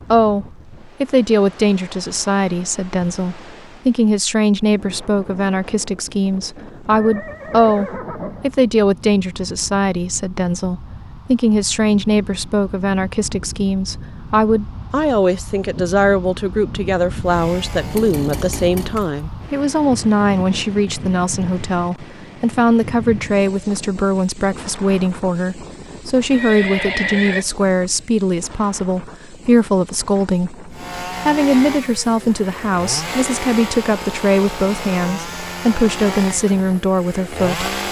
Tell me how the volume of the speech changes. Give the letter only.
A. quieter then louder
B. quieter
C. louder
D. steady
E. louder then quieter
D.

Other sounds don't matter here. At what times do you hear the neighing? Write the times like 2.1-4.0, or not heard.
6.8-8.6, 26.3-27.4.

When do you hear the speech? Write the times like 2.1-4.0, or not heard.
0.1-37.7.